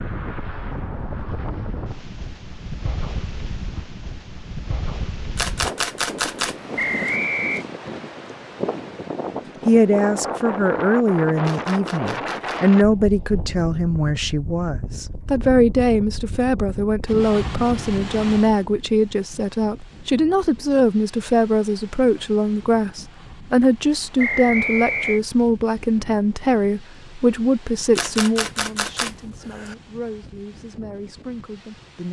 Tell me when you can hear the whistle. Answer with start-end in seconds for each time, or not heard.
6.8-7.7, 24.1-25.2.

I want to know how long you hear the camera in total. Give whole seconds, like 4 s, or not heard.
5 s.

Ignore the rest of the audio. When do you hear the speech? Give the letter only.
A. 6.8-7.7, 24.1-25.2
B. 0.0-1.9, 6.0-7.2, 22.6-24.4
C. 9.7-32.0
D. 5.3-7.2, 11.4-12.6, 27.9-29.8
C.